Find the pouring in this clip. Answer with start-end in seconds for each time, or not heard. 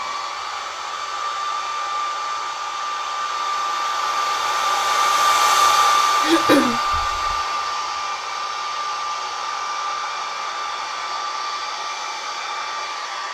not heard.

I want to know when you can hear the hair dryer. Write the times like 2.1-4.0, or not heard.
0.0-13.2.